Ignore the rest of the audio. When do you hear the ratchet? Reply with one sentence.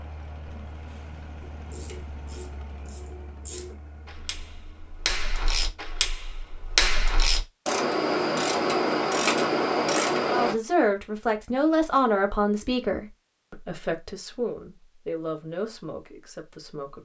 You can hear the ratchet from 1.6 to 10.6 s.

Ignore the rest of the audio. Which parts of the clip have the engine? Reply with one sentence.
You can hear the engine from 0.0 to 6.7 s.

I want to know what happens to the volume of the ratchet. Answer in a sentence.
The loudness of the ratchet goes up.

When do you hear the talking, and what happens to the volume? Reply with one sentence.
You can hear the talking from 10.3 to 17.0 s, getting quieter.